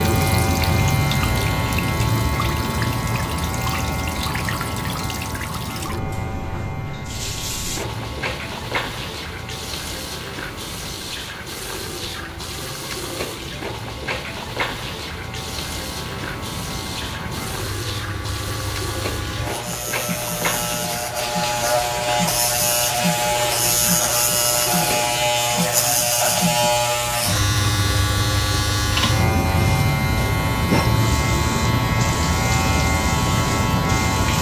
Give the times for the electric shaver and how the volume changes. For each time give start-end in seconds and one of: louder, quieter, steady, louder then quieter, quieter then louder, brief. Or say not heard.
0.0-34.3 quieter then louder.